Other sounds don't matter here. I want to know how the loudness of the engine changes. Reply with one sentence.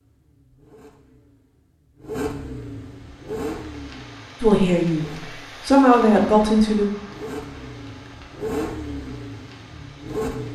The volume of the engine goes down, then up.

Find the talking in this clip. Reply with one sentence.
You can hear the talking from 4.4 to 6.8 s.